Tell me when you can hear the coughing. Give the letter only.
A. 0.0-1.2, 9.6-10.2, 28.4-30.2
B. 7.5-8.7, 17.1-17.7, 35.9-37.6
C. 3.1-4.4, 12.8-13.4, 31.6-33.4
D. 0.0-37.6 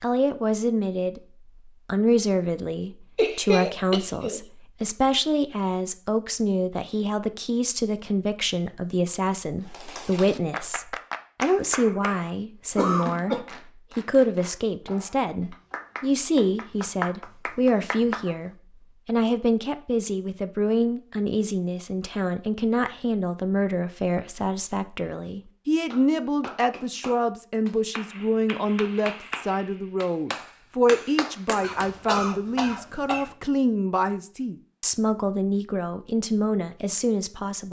C.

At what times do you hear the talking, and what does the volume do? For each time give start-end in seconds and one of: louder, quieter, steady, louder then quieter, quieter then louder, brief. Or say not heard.
0.0-37.6 steady.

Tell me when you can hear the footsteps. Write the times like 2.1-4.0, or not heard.
not heard.